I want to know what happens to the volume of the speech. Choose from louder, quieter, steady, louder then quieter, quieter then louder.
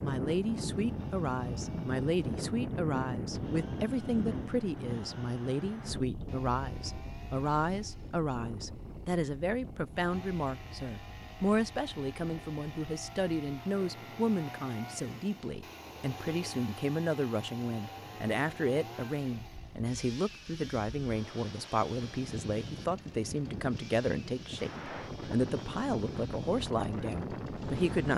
steady.